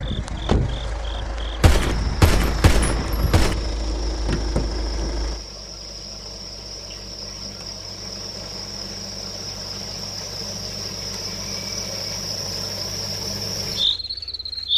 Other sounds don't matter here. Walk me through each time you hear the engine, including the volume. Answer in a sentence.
You can hear the engine from 0.0 to 14.7 s, getting quieter.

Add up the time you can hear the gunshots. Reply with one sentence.
The gunshots can be heard for 2 seconds in total.